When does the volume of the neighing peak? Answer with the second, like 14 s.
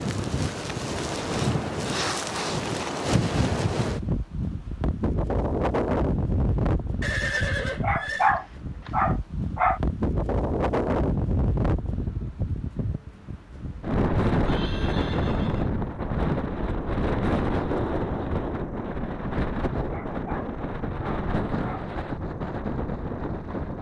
7 s.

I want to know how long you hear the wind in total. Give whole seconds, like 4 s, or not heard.
24 s.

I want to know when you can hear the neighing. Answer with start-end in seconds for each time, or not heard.
7.0-8.3, 14.4-15.7.